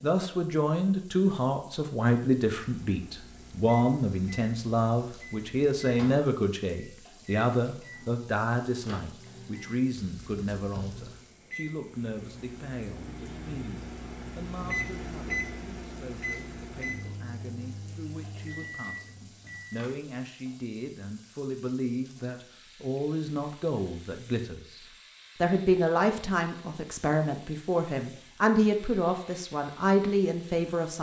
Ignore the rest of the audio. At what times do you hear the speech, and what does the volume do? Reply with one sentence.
You can hear the speech from 0.0 to 30.9 s, getting quieter then louder.